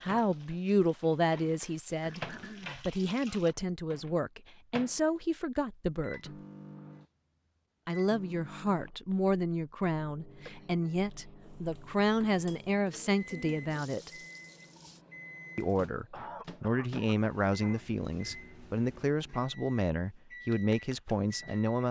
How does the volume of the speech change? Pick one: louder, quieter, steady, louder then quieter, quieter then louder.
steady.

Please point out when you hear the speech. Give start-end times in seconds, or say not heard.
0.0-6.3, 7.8-14.1, 15.6-21.8.